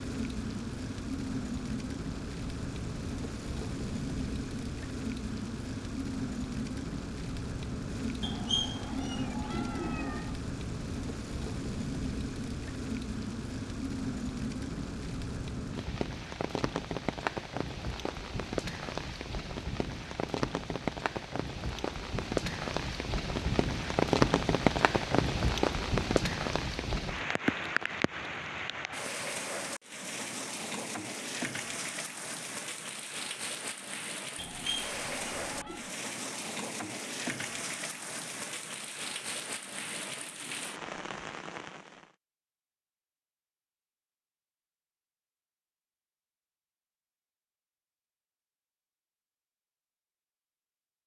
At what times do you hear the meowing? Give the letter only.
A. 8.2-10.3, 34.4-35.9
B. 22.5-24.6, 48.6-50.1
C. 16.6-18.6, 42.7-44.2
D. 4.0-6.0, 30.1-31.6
A.